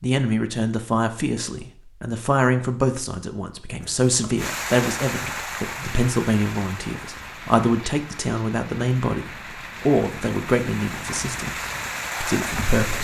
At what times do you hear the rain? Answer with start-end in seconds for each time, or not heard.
4.3-12.9.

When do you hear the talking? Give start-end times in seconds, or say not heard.
0.0-12.9.